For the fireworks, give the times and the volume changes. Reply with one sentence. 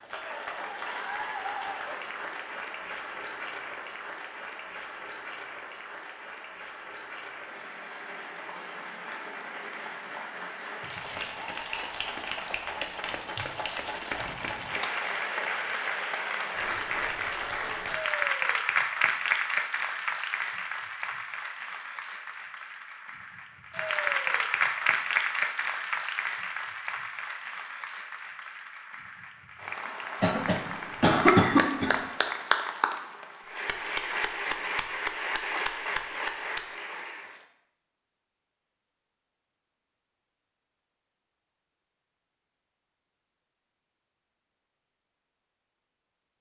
The fireworks can't be heard in this clip.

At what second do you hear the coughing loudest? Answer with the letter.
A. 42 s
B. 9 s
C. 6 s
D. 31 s
D.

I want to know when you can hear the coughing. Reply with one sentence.
The coughing can be heard from 30.2 to 32.0 s.